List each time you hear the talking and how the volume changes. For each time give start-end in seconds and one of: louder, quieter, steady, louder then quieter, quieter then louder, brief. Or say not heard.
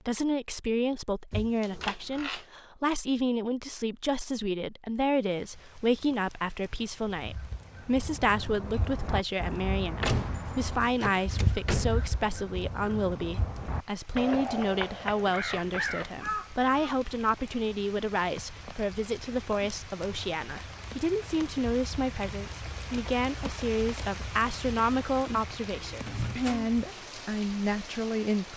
0.1-28.5 steady.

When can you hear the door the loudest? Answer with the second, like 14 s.
10 s.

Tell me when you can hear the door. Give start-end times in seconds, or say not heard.
1.3-2.5, 10.0-12.2, 26.0-26.7.